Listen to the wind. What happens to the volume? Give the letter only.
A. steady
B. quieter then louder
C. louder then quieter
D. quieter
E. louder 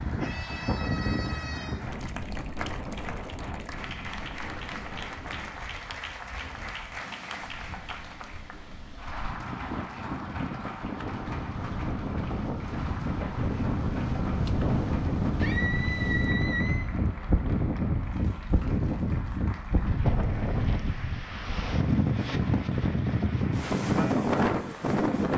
B.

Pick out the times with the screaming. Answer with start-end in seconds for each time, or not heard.
0.2-1.8, 15.3-16.9.